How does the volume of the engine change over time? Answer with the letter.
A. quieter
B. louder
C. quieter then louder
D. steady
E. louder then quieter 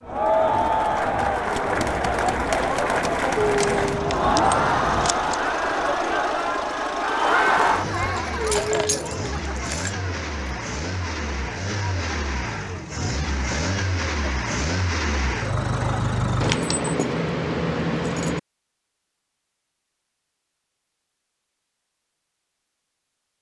B.